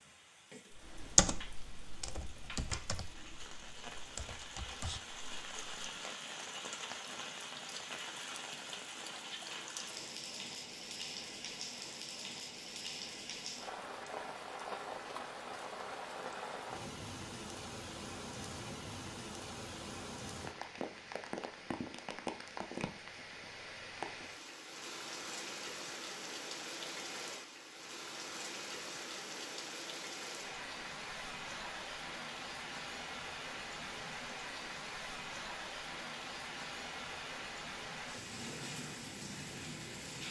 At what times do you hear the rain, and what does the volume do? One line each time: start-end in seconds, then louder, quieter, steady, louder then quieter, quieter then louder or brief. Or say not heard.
0.0-40.2 steady.